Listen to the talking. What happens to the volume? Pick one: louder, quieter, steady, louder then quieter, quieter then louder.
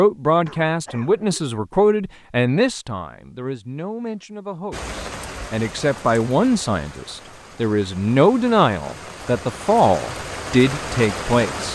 quieter then louder.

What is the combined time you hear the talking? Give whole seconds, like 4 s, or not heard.
12 s.